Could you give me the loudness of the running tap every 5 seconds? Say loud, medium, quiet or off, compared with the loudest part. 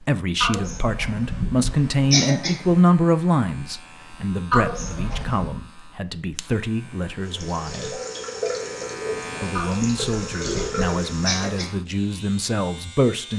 off, loud, loud.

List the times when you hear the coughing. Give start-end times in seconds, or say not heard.
0.4-2.8, 4.5-5.5, 9.6-11.7.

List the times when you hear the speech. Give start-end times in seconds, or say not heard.
0.0-8.0, 9.4-13.3.